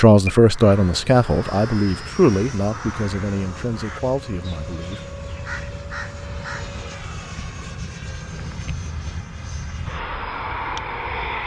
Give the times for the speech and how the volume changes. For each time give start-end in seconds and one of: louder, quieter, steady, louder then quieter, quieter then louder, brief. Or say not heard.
0.0-5.0 quieter.